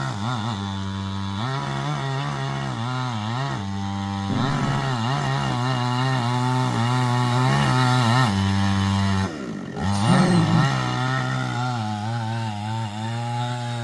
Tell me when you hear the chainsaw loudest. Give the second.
8 s.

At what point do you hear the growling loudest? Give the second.
10 s.